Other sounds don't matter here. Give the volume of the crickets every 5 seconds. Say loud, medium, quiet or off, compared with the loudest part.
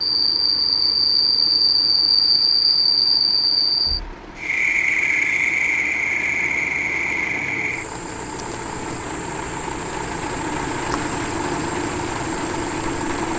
loud, medium, quiet.